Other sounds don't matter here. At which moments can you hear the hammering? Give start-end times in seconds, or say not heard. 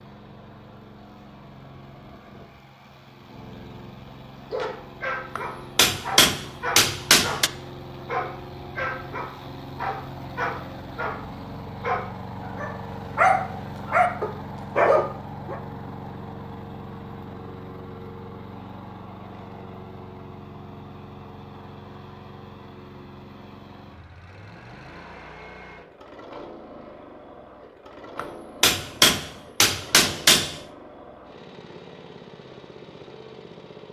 5.3-7.5, 28.1-30.6.